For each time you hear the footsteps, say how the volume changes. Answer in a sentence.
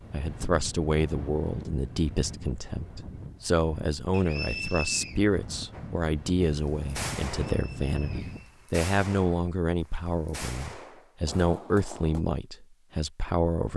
You can't hear the footsteps here.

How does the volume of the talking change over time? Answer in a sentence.
The volume of the talking stays about the same.